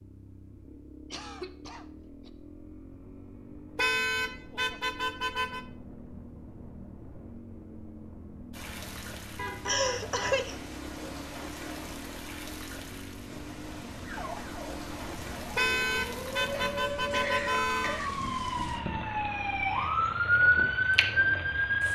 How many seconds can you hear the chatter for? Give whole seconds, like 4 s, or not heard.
not heard.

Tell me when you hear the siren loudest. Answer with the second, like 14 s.
21 s.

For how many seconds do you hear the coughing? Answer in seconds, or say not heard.
4 s.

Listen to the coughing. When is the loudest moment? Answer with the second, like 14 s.
10 s.